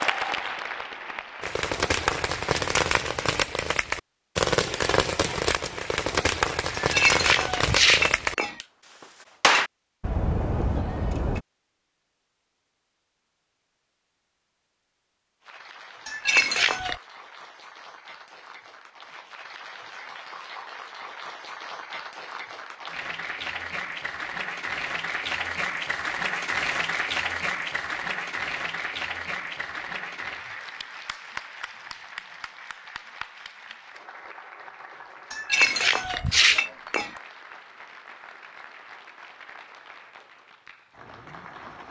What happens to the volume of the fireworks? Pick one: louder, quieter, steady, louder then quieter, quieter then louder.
steady.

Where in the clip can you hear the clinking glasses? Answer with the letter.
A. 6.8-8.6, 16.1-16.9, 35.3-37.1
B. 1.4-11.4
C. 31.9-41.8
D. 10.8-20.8
A.